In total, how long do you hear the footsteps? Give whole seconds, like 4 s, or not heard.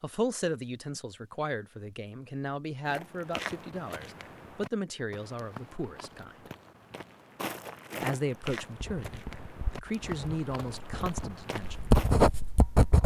9 s.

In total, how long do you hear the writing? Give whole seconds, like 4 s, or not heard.
4 s.